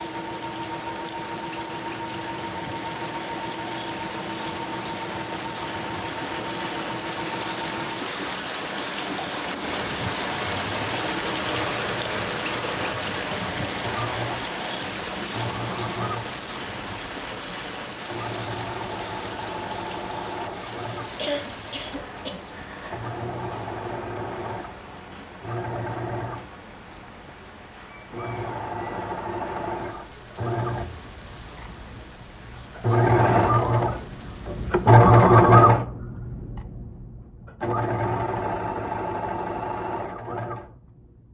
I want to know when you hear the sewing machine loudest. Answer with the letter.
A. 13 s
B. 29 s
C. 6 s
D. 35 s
D.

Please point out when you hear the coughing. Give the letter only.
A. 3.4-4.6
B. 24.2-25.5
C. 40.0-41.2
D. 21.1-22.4
D.